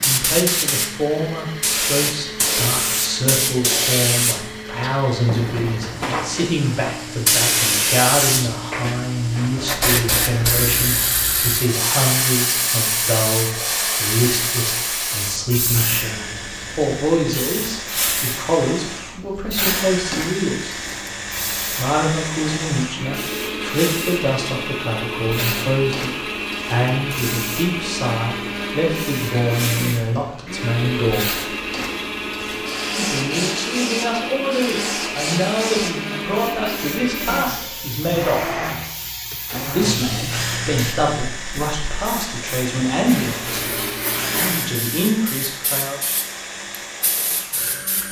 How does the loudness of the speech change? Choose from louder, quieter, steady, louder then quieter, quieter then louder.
steady.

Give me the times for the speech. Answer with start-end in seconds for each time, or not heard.
0.0-20.8, 21.7-31.3, 33.0-38.6, 39.6-46.0.